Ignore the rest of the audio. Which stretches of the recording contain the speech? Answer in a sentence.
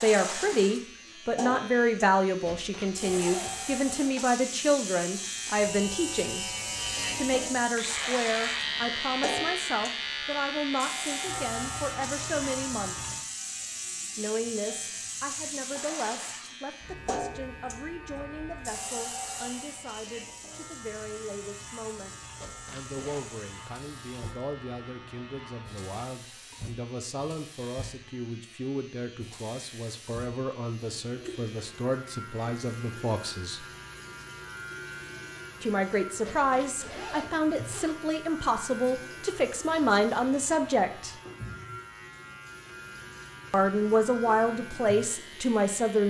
You can hear the speech from 0.0 to 6.5 s, from 7.2 to 13.1 s, from 14.2 to 33.6 s, from 35.6 to 41.1 s and from 43.5 to 46.0 s.